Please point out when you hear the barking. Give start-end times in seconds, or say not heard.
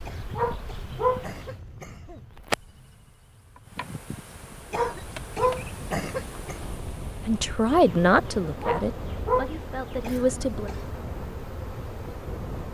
0.3-1.2, 4.7-5.7, 8.6-9.5.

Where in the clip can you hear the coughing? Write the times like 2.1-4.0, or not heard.
0.1-2.2, 4.7-6.6, 10.0-10.9.